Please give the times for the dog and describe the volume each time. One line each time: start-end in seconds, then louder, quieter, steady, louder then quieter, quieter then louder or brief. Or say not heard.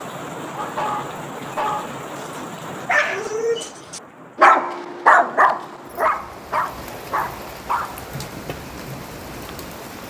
0.6-8.0 louder then quieter.